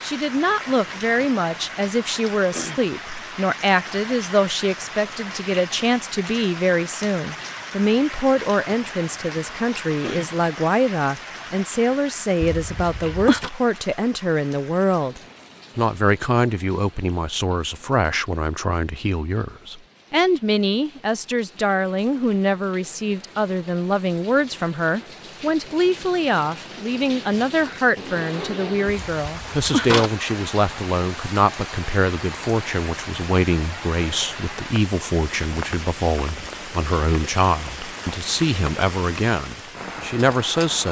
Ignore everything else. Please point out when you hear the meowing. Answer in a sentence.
The meowing can be heard from 12.4 to 13.5 s and from 28.9 to 30.1 s.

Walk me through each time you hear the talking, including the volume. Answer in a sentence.
You can hear the talking from 0.0 to 40.8 s, at a steady volume.